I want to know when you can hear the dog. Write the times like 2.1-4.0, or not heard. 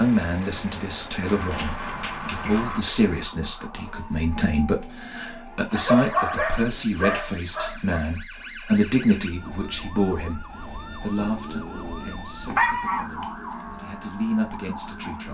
1.2-2.8, 5.8-8.0, 11.2-13.1.